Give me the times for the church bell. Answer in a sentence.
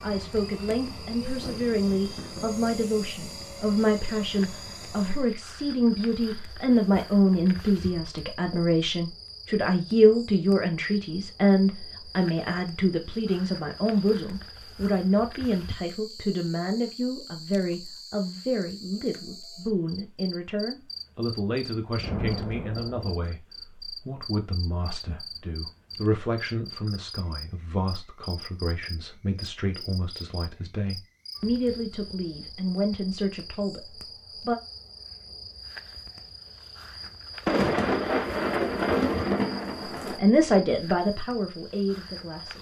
You can't hear the church bell here.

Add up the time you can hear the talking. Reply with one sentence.
You can hear the talking for 37 seconds altogether.